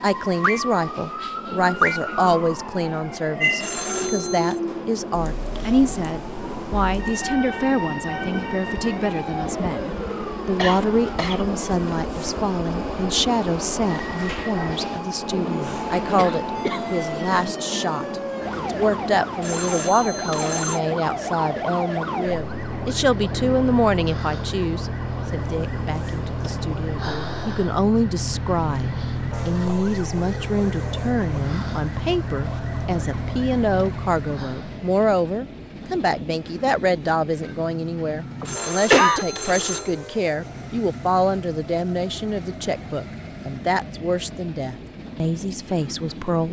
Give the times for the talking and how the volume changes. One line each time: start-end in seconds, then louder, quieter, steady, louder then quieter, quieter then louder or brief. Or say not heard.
0.0-46.4 steady.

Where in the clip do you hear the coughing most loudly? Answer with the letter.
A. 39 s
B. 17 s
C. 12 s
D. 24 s
A.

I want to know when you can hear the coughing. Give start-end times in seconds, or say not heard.
10.6-11.4, 15.7-17.5, 38.4-39.2.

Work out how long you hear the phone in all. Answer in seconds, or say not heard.
4 s.